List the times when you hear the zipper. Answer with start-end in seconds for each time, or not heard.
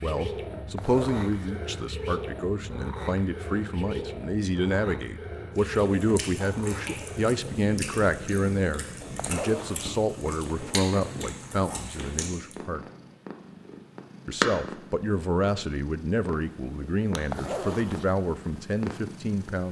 0.8-1.6, 9.2-10.0, 17.3-18.1.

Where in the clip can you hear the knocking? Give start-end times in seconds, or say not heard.
not heard.